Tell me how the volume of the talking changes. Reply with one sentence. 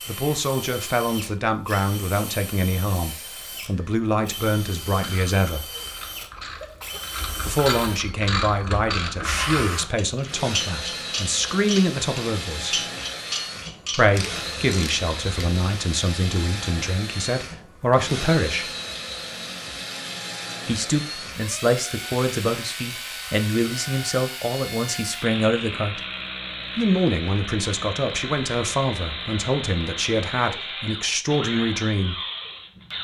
The volume of the talking stays about the same.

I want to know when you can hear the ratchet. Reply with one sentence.
The ratchet can be heard from 4.9 to 15.6 s.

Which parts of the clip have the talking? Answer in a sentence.
You can hear the talking from 0.1 to 5.7 s, from 7.4 to 12.8 s, from 13.9 to 18.7 s, from 20.6 to 26.0 s and from 26.8 to 32.2 s.